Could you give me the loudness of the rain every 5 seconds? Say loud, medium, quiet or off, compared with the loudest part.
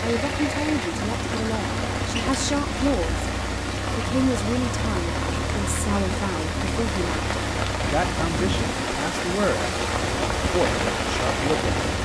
medium, loud, loud.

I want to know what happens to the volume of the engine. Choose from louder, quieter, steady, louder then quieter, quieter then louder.
steady.